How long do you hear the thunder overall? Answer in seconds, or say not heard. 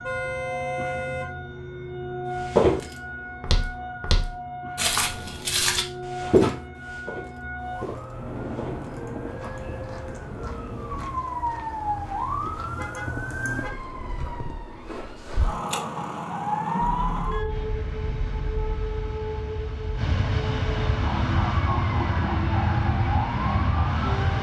3 s.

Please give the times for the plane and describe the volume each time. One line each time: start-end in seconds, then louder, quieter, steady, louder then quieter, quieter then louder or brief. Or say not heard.
17.4-24.3 louder.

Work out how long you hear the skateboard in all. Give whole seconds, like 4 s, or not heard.
not heard.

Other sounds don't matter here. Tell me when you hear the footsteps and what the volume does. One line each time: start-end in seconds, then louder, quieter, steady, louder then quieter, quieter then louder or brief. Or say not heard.
2.4-13.1 louder then quieter.